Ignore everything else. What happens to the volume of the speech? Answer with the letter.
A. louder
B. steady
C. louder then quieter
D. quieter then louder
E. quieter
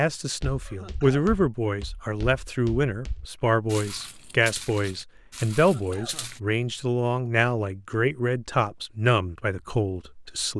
B.